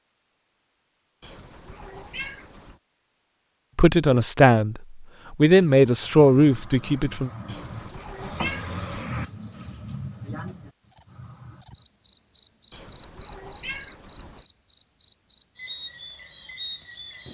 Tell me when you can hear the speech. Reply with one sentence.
You can hear the speech from 3.8 to 7.3 s.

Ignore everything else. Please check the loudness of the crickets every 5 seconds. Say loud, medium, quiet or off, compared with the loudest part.
off, loud, loud, medium.